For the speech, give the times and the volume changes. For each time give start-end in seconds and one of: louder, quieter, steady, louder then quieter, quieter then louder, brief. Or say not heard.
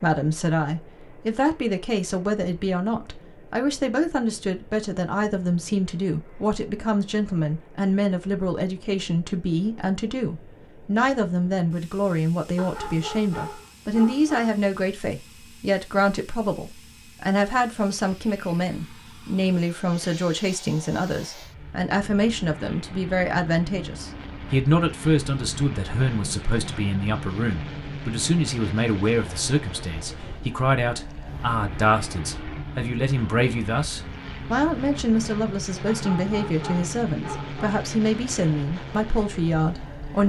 0.0-40.2 steady.